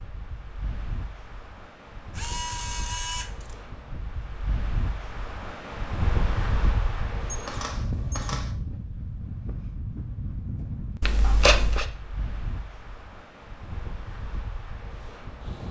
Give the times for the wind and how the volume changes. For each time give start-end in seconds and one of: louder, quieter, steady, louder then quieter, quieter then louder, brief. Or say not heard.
0.0-15.6 louder then quieter.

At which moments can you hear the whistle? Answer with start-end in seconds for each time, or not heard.
not heard.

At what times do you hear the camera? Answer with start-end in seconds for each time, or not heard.
2.1-3.5, 7.2-8.6, 11.0-11.8.